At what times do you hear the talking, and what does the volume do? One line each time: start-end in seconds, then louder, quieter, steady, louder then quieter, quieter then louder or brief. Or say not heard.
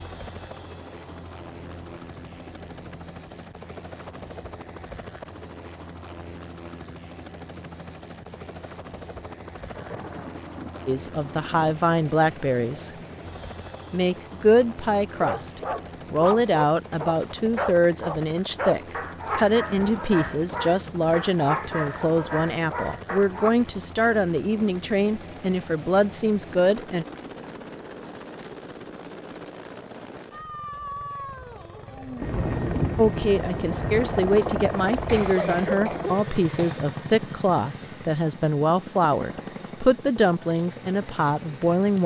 10.8-12.9 brief
13.9-27.1 steady
33.0-42.0 steady.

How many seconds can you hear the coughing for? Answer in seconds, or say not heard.
2 s.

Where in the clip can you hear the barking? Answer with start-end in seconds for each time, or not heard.
15.1-23.5.